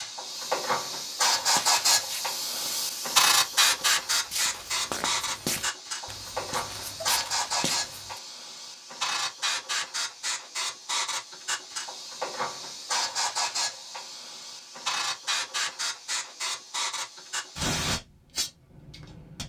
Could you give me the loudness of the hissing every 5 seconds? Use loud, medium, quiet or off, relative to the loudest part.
loud, medium, medium, medium.